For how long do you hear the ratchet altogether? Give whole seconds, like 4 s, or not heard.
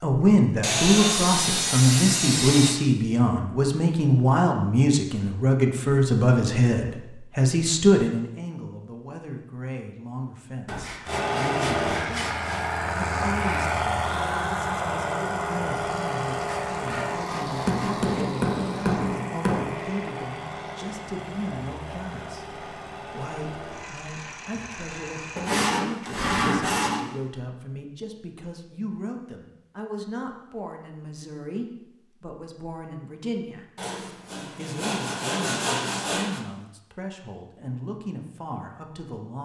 not heard.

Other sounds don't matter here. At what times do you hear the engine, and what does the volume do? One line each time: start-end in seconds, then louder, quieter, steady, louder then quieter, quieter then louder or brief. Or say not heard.
11.1-26.8 quieter.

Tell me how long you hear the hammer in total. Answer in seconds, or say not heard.
2 s.